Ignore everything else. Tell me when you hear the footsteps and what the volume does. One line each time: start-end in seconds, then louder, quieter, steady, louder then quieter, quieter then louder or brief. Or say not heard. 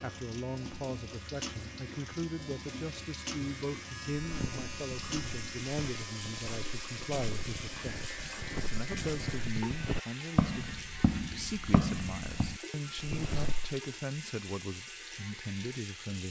4.3-13.8 louder.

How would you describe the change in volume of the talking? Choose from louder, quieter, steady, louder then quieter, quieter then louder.
steady.